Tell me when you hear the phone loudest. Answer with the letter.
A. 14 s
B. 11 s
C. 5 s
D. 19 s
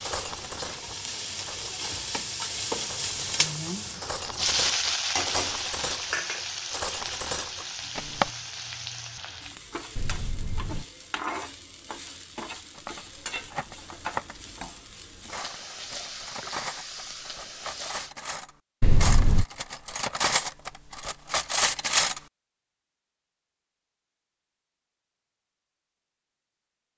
D.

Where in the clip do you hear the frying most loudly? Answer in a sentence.
The loudest moment of the frying is at 5 seconds.